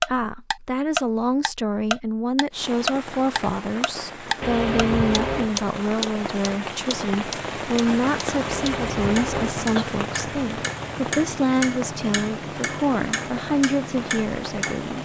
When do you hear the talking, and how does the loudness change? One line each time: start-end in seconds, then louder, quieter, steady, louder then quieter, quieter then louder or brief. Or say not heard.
0.0-15.0 steady.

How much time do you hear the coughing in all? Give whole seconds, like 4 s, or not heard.
3 s.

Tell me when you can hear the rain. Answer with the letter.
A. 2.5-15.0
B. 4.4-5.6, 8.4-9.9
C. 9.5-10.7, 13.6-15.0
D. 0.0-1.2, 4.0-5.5
A.